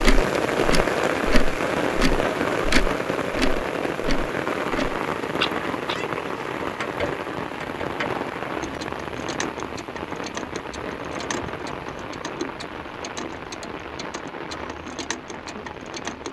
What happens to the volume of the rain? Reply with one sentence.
The volume of the rain goes down.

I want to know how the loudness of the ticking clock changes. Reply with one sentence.
The volume of the ticking clock goes down.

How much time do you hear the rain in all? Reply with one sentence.
The rain can be heard for 16 seconds in total.